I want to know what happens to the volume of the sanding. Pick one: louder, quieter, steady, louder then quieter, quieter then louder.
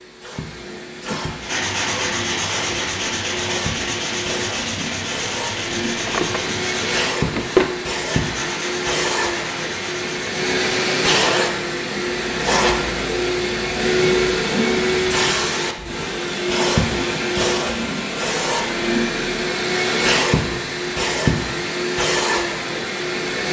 quieter.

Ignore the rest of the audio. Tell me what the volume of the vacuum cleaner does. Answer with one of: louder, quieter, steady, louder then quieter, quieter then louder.
louder.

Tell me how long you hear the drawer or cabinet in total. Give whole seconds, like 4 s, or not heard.
2 s.